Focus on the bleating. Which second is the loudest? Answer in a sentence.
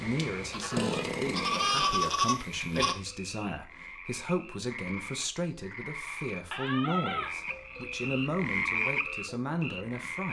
The volume of the bleating peaks at 2 seconds.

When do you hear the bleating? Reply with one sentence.
You can hear the bleating from 0.5 to 3.0 s and from 6.5 to 8.0 s.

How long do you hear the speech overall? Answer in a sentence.
The speech can be heard for 10 seconds in total.